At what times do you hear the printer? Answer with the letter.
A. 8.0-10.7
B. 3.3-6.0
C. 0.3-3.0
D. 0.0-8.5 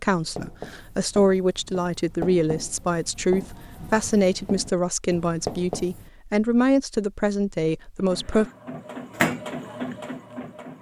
A.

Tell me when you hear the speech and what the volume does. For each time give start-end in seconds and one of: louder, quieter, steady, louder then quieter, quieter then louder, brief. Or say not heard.
0.0-8.5 steady.